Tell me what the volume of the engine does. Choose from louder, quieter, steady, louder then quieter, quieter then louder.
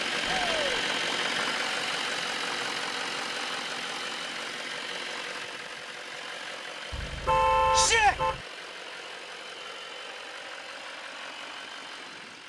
quieter.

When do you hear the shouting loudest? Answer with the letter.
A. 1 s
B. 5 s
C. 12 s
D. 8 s
D.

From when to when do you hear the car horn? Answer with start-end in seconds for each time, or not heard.
6.9-8.4.